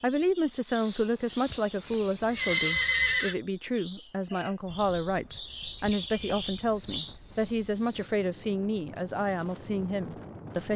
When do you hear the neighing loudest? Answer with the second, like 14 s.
3 s.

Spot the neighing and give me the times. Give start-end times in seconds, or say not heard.
1.4-3.4, 5.8-6.5.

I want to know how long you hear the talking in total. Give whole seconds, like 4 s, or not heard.
11 s.